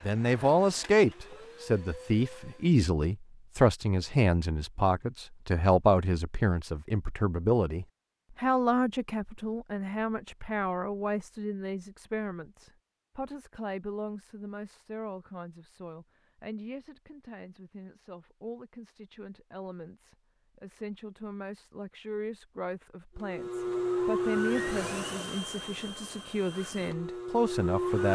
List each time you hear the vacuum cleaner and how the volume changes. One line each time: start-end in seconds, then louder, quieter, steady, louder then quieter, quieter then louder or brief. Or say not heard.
0.0-2.8 brief
23.1-28.0 quieter then louder.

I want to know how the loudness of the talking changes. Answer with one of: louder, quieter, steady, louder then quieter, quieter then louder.
quieter then louder.